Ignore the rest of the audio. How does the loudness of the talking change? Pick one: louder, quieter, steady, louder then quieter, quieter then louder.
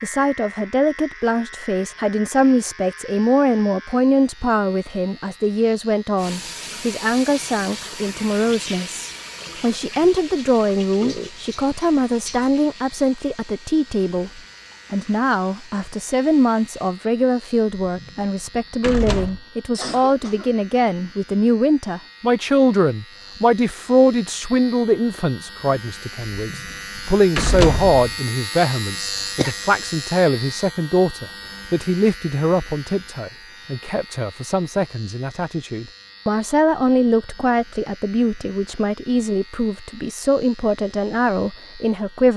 steady.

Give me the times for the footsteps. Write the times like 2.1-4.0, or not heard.
not heard.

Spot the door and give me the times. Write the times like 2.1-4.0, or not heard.
17.8-19.4, 26.4-28.1.